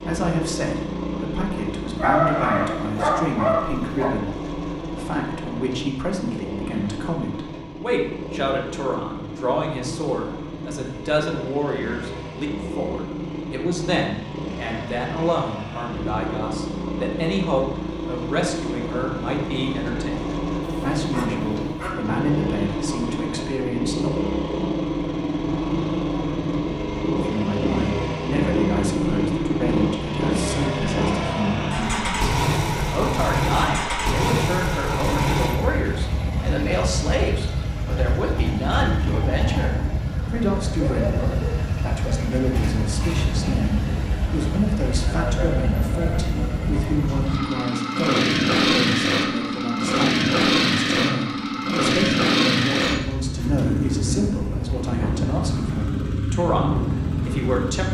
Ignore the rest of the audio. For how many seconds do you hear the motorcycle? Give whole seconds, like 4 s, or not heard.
58 s.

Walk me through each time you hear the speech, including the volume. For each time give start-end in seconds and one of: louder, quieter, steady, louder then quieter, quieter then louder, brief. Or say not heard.
0.0-24.1 steady
27.1-57.8 steady.